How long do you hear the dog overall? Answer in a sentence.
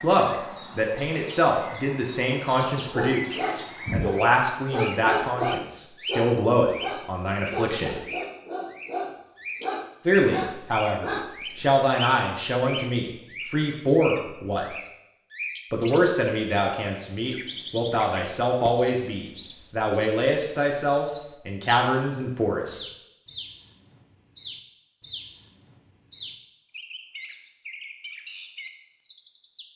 You can hear the dog for 9 seconds altogether.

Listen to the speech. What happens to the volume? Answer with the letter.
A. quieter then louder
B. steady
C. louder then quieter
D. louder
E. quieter
B.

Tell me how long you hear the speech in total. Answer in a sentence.
You can hear the speech for 20 seconds altogether.